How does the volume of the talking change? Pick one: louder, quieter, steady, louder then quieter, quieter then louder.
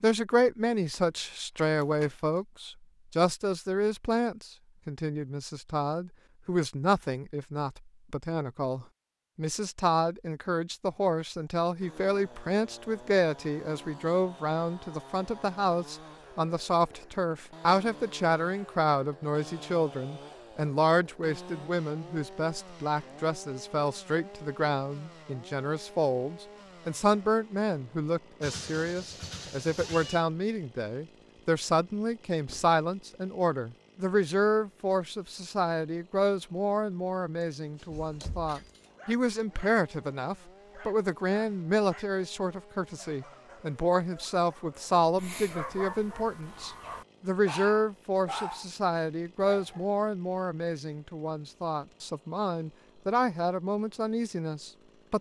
steady.